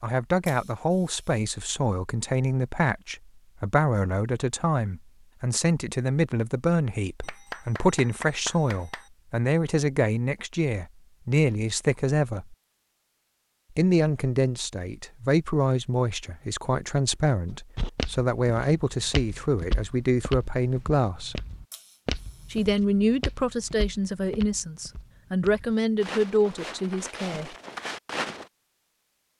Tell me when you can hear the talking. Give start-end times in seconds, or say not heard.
0.0-12.6, 13.8-21.4, 22.5-27.5.